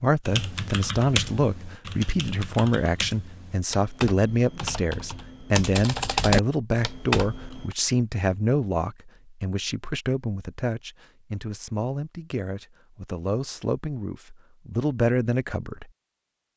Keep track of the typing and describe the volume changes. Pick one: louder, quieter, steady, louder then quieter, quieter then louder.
quieter then louder.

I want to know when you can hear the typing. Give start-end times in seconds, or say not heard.
0.2-7.8.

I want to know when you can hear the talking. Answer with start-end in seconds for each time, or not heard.
0.0-15.9.